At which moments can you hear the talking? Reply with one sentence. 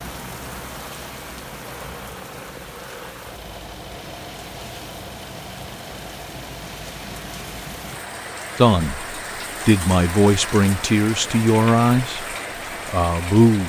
The talking can be heard from 8.6 to 13.6 s.